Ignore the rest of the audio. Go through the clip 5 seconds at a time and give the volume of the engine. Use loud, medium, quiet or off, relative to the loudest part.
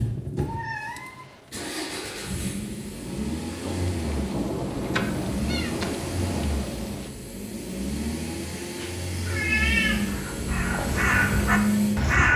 medium, medium, loud.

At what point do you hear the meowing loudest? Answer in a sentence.
The volume of the meowing peaks at 10 seconds.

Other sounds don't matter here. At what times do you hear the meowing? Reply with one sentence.
You can hear the meowing from 0.3 to 1.5 s, from 4.7 to 6.5 s and from 8.5 to 10.1 s.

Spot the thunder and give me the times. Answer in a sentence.
You can hear the thunder from 3.6 to 7.1 s.